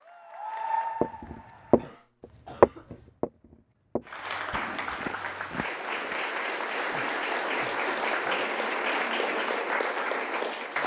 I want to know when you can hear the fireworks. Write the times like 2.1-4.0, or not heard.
not heard.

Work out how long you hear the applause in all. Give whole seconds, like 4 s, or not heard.
9 s.